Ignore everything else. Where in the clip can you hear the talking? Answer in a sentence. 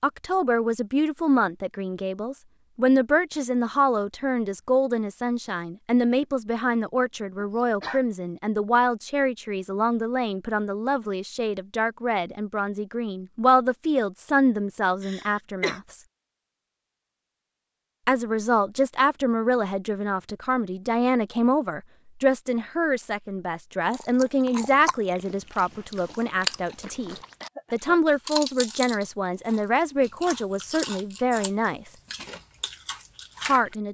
The talking can be heard from 0.0 to 16.0 s, from 18.1 to 31.9 s and from 33.4 to 33.9 s.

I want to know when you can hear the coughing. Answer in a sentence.
You can hear the coughing from 7.6 to 8.0 s, from 15.0 to 15.8 s and from 27.4 to 28.0 s.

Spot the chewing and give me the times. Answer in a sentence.
The chewing can be heard from 23.9 to 27.5 s and from 28.2 to 33.8 s.